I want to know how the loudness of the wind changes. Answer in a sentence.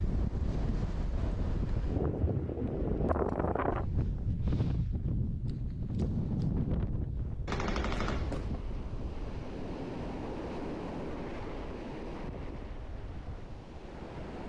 The volume of the wind goes down.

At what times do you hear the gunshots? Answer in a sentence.
The gunshots can be heard from 7.5 to 8.5 s.